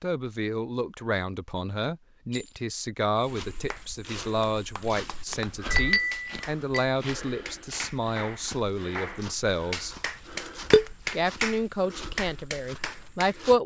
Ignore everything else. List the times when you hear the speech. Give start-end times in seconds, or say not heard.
0.0-9.9, 11.1-13.6.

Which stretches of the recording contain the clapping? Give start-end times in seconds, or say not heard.
3.7-13.4.